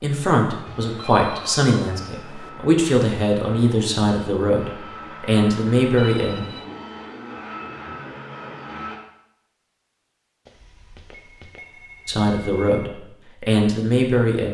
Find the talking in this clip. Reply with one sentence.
The talking can be heard from 0.0 to 6.5 s and from 12.1 to 14.4 s.